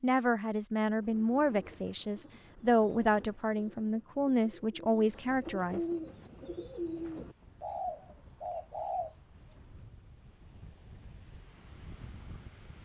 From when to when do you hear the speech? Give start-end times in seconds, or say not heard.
0.0-5.8.